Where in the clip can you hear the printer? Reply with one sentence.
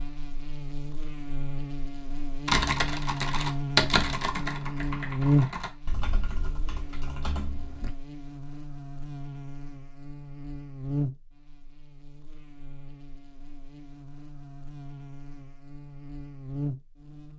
You can't hear the printer here.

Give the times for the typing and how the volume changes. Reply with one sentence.
You can hear the typing from 2.5 to 8.0 s, getting quieter.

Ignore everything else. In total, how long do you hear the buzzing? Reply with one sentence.
You can hear the buzzing for 17 seconds altogether.